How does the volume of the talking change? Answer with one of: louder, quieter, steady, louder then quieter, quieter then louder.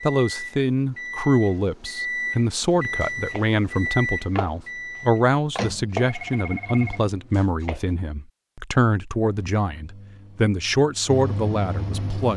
steady.